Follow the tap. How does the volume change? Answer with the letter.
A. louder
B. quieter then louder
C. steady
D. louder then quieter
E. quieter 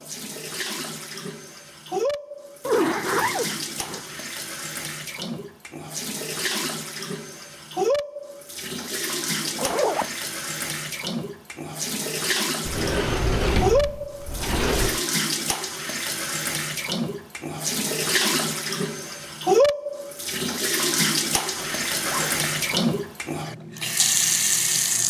A.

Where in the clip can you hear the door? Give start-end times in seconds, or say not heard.
12.7-15.0.